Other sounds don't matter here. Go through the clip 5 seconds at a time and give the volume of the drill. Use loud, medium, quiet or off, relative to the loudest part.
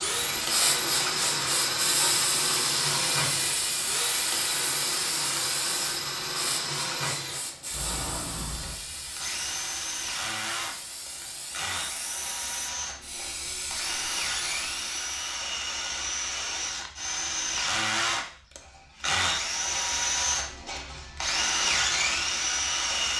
loud, medium, medium, loud, loud.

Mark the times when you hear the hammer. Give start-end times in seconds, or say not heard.
not heard.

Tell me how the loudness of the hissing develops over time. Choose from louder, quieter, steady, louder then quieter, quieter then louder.
quieter.